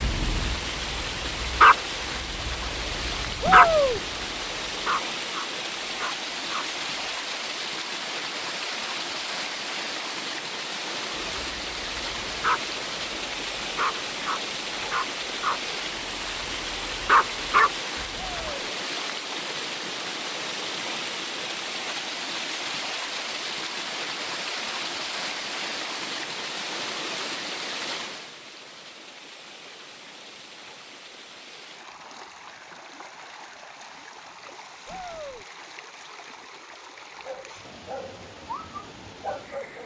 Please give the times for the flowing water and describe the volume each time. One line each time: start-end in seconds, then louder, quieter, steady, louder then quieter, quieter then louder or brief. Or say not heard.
0.0-39.8 quieter.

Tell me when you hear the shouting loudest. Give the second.
4 s.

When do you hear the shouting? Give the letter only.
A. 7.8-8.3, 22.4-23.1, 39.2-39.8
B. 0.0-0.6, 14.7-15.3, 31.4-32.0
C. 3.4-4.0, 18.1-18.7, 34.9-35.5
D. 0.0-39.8
C.